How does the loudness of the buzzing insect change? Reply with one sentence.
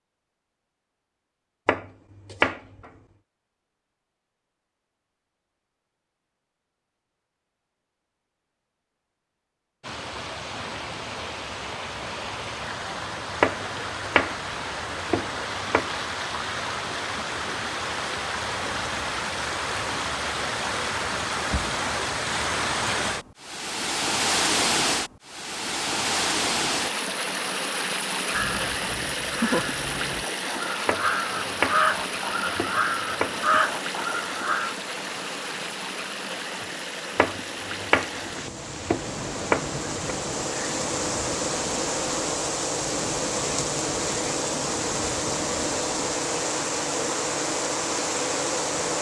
The loudness of the buzzing insect goes up.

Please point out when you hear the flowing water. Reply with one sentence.
You can hear the flowing water from 9.8 to 48.9 s.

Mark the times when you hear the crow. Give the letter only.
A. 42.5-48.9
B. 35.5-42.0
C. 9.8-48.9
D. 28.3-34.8
D.